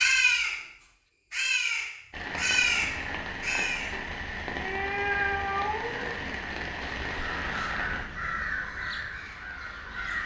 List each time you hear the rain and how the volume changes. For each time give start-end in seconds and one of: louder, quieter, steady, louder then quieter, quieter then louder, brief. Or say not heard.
2.1-10.2 quieter.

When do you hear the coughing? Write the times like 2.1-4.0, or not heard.
not heard.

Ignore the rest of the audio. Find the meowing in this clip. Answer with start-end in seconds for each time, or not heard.
4.6-6.2.